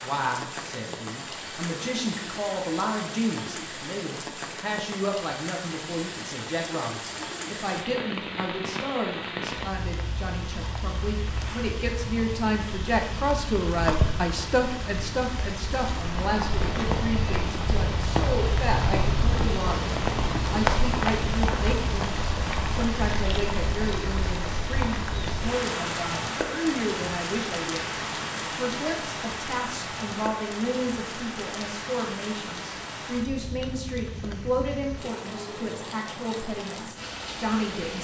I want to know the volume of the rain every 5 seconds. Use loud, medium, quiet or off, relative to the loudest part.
medium, medium, medium, loud, loud, loud, medium, medium.